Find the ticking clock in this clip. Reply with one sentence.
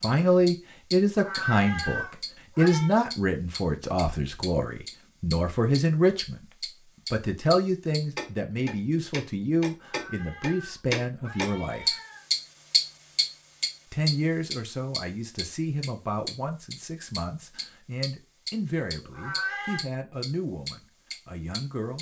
You can hear the ticking clock from 0.0 to 21.9 s.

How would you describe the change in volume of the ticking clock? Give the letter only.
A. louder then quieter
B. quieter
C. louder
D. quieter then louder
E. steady
A.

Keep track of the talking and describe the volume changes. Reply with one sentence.
The loudness of the talking goes down.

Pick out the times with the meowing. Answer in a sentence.
You can hear the meowing from 1.1 to 3.0 s, from 9.8 to 12.3 s and from 18.9 to 19.9 s.